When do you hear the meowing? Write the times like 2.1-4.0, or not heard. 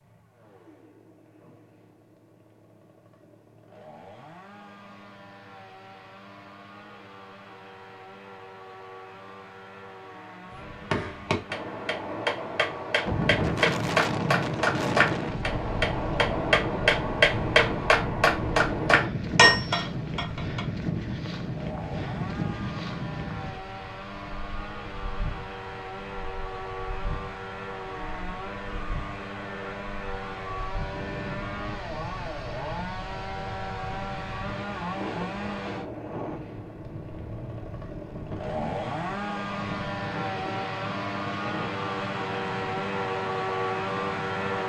not heard.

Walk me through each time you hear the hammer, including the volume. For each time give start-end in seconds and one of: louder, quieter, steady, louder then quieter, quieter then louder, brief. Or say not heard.
10.5-20.6 louder.